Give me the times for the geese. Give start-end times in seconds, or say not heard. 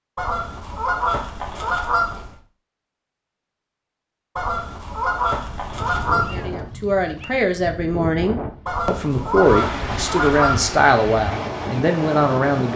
0.1-2.4, 4.3-6.5, 8.7-10.8.